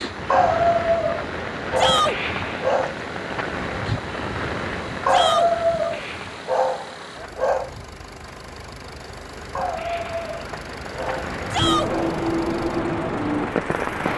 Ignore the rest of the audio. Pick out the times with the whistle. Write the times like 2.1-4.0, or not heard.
not heard.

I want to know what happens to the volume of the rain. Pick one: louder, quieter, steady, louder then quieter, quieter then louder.
quieter then louder.